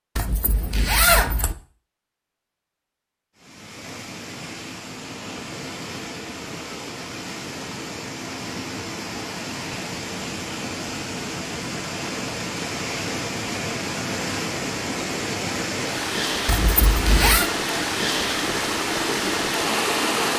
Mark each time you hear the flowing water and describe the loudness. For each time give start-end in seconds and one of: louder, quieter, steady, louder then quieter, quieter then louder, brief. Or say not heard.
3.4-20.3 louder.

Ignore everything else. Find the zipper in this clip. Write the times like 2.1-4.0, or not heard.
0.1-1.6, 16.4-17.5.